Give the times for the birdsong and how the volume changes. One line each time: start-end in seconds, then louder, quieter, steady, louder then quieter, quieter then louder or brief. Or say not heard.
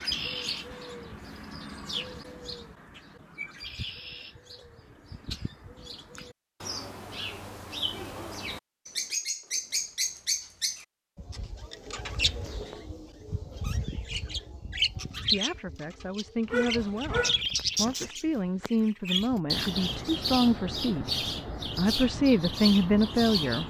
0.0-23.6 louder.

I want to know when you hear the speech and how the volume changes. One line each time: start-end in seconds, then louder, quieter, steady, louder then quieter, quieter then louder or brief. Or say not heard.
15.2-23.6 louder.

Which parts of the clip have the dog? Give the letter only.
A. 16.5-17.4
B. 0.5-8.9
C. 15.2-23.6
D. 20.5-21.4
A.